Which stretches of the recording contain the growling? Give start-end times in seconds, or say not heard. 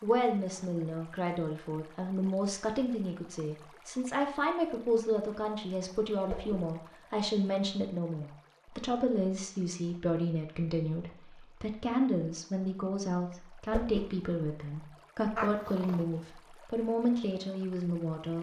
15.3-16.2.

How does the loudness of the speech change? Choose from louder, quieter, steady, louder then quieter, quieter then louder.
steady.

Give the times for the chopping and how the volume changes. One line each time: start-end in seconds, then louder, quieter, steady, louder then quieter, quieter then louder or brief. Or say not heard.
not heard.